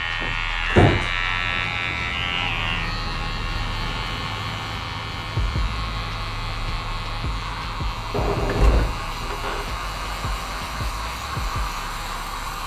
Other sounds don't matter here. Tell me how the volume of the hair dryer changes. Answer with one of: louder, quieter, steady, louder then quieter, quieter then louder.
louder.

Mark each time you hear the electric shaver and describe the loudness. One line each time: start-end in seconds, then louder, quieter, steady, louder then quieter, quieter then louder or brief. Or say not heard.
0.0-12.6 quieter.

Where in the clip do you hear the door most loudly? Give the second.
1 s.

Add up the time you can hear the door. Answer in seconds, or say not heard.
2 s.